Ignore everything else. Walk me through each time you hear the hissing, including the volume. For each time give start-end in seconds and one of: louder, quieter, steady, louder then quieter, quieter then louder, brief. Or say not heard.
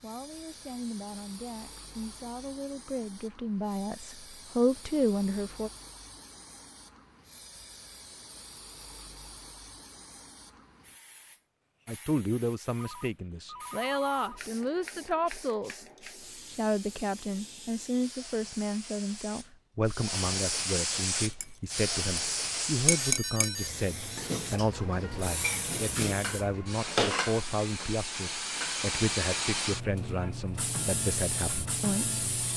0.0-32.5 louder.